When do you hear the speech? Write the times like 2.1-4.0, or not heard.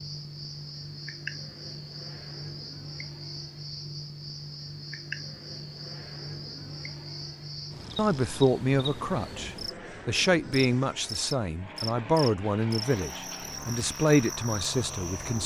8.0-15.4.